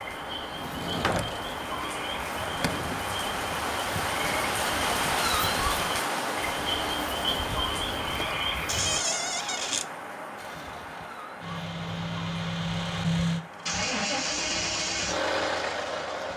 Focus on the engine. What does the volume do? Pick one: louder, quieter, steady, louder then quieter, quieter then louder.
louder.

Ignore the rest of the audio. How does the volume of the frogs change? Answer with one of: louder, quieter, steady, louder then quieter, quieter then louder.
louder.